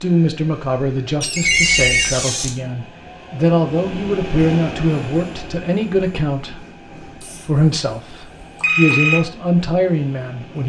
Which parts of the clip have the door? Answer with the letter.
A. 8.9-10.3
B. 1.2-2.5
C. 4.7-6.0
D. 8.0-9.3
B.